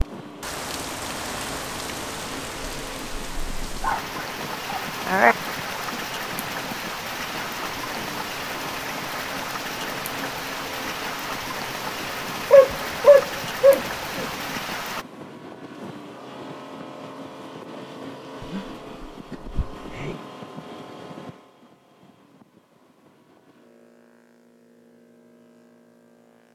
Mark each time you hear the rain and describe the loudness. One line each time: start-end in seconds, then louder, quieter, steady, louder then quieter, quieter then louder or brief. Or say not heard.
0.0-15.1 steady.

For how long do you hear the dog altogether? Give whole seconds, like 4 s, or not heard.
5 s.